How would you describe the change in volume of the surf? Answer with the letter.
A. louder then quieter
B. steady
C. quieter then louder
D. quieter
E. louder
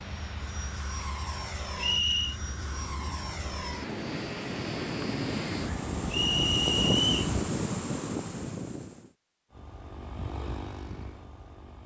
E.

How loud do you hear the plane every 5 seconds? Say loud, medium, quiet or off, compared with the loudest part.
loud, loud, medium.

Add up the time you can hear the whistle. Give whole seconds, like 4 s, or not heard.
2 s.